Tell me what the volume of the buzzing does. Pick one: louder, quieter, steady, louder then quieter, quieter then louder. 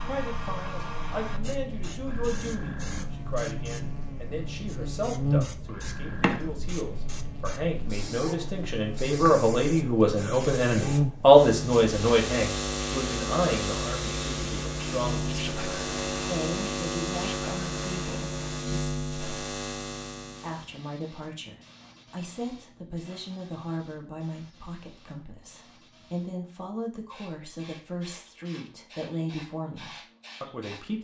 louder.